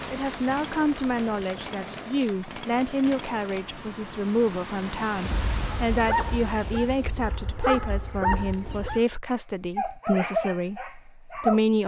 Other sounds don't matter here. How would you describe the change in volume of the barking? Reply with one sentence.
The volume of the barking goes up.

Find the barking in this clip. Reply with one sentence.
You can hear the barking from 5.9 to 11.6 s.